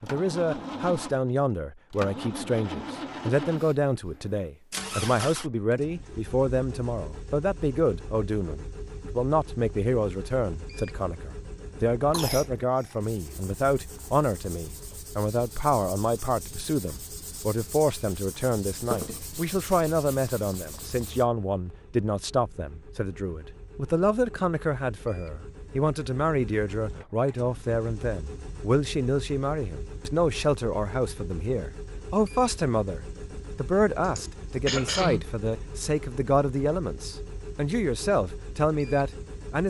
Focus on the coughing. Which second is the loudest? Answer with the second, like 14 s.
35 s.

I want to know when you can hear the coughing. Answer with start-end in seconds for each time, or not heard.
12.1-12.9, 34.0-35.2.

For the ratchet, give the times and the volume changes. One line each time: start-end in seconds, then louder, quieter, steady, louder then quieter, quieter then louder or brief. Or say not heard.
not heard.